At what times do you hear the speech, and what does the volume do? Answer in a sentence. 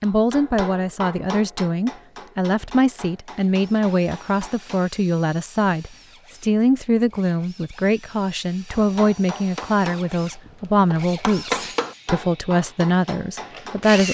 You can hear the speech from 0.0 to 14.0 s, at a steady volume.